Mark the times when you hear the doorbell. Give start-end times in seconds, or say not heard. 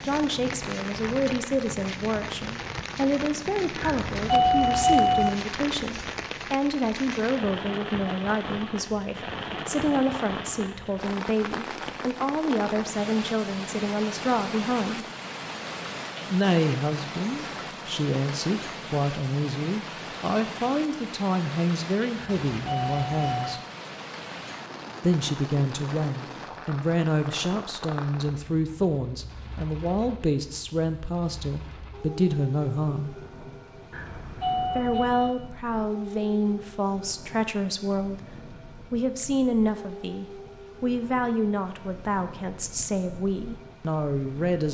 3.8-5.3, 22.1-23.6, 33.9-35.4.